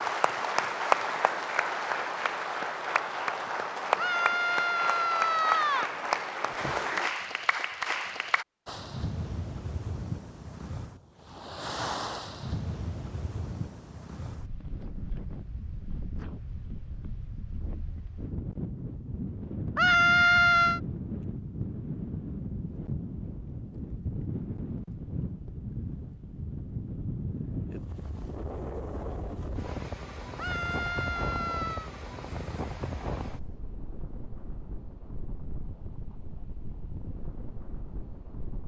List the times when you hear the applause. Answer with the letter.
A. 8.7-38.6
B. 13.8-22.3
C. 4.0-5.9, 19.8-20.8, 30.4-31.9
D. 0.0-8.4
D.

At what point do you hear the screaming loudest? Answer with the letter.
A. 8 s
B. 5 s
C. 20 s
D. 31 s
C.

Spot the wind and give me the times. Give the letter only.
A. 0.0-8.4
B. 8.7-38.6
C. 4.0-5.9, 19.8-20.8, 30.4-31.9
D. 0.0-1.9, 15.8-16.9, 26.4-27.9
B.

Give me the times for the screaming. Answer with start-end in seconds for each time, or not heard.
4.0-5.9, 19.8-20.8, 30.4-31.9.